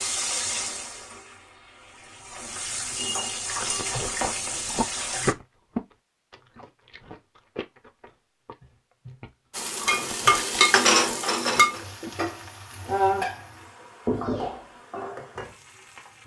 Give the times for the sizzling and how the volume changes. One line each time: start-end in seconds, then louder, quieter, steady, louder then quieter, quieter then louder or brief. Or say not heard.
0.0-5.3 quieter then louder
9.6-16.2 quieter.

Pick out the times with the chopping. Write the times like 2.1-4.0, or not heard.
not heard.